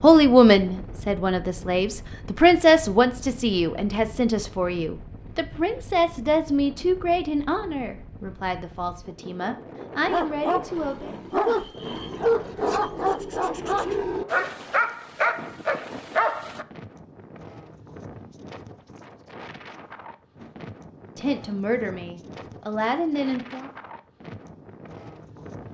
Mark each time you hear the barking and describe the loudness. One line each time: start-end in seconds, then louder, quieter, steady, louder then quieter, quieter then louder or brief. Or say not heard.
10.1-16.6 steady.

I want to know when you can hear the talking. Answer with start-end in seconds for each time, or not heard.
0.0-11.2, 21.1-23.7.